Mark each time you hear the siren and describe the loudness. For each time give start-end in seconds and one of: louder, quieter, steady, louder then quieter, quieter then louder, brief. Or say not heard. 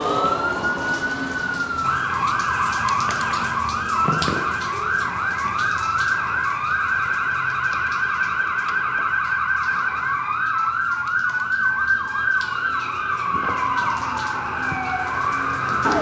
0.0-15.9 steady.